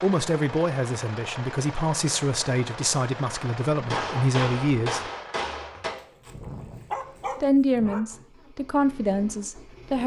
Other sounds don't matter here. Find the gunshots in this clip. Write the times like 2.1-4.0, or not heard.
3.9-5.9.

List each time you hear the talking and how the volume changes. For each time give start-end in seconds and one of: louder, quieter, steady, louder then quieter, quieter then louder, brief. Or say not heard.
0.0-5.0 steady
7.4-10.0 brief.